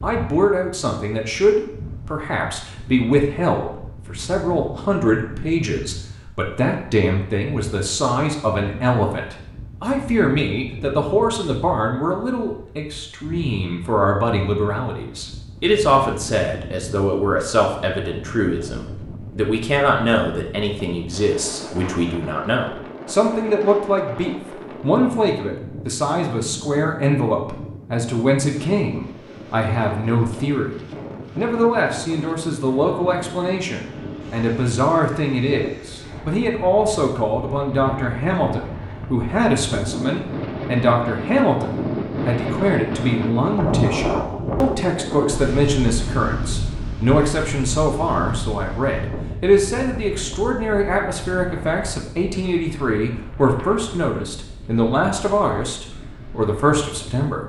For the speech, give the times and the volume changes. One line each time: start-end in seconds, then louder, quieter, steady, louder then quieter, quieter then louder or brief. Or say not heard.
0.0-57.4 steady.